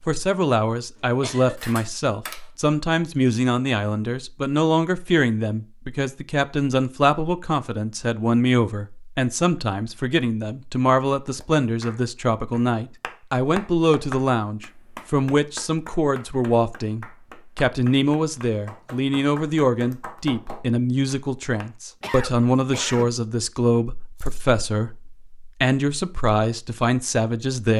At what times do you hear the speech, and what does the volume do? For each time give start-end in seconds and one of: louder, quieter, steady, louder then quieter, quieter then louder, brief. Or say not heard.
0.1-27.7 steady.